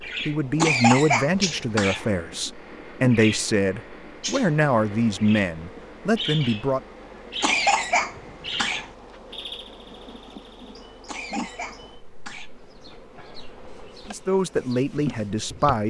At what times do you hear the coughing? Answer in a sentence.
You can hear the coughing from 0.6 to 2.0 s, from 7.4 to 8.9 s and from 11.1 to 12.5 s.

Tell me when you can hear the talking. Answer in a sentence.
The talking can be heard from 0.0 to 6.8 s and from 14.1 to 15.8 s.